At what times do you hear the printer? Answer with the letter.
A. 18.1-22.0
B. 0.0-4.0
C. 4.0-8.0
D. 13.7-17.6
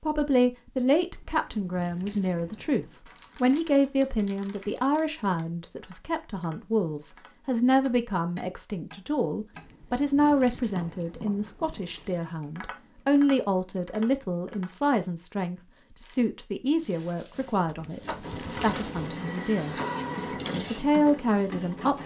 A.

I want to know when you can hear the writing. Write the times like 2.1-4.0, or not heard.
not heard.